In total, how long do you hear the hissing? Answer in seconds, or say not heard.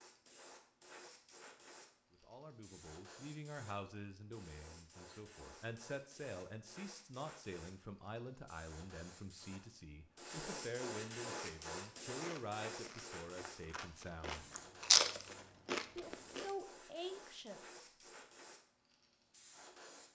20 s.